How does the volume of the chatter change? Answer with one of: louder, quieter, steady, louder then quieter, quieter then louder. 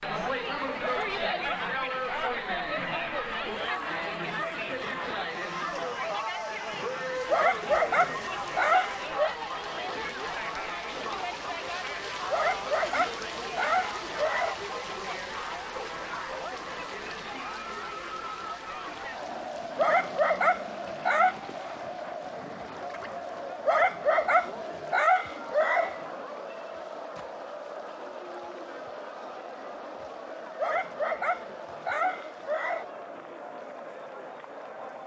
quieter.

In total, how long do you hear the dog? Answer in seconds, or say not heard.
13 s.